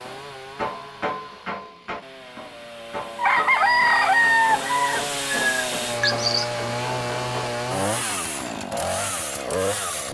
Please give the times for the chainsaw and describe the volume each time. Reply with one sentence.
You can hear the chainsaw from 0.0 to 10.0 s, getting louder.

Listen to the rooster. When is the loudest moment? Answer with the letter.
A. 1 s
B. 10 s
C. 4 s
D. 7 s
C.